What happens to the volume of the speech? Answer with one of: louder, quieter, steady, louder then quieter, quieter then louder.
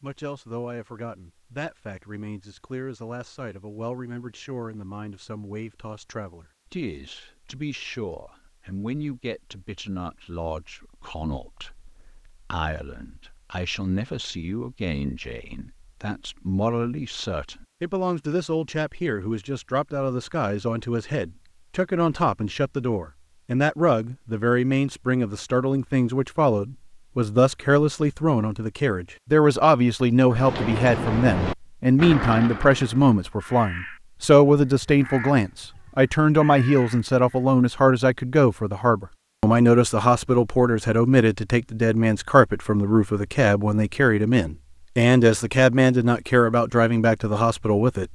louder.